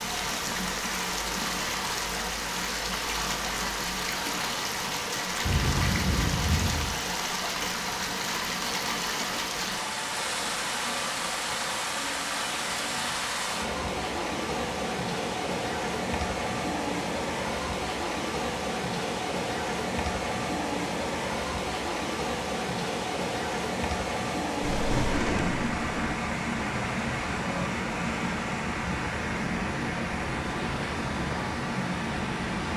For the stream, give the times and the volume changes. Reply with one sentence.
The stream can be heard from 0.0 to 32.7 s, at a steady volume.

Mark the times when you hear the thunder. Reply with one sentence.
You can hear the thunder from 5.4 to 7.0 s and from 24.6 to 26.1 s.